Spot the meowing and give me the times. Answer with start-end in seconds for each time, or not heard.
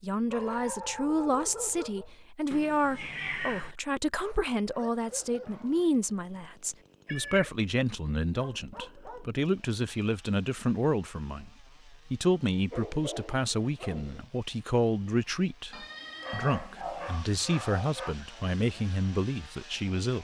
2.5-3.8, 7.0-7.5, 15.7-17.2.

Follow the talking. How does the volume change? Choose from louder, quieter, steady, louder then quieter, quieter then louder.
steady.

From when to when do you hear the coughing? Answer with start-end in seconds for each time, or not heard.
not heard.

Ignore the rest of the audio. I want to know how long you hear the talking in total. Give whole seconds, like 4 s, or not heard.
20 s.